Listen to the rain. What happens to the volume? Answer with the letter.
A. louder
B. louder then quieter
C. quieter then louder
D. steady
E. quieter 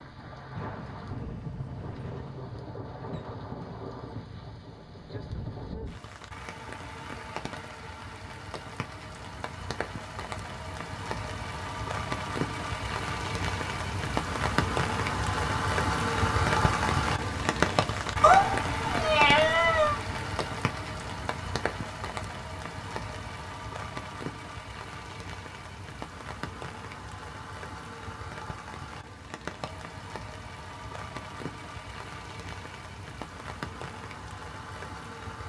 B.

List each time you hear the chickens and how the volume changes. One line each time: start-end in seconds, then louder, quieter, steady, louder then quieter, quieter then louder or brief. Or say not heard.
not heard.